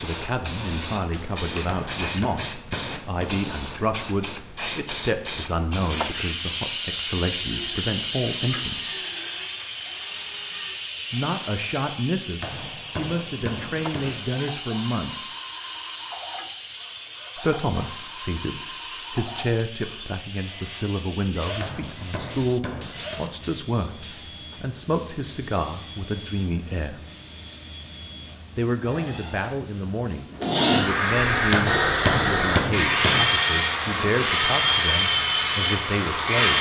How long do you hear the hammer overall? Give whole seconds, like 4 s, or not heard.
7 s.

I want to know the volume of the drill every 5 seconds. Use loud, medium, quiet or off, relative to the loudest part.
off, quiet, quiet, quiet, quiet, quiet, loud, loud.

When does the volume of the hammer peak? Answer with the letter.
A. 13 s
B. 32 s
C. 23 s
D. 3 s
B.